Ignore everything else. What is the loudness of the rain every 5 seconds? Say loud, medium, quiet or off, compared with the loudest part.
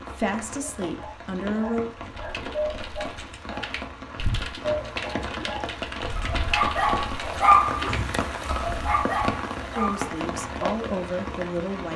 medium, loud, loud.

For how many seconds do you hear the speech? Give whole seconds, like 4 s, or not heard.
4 s.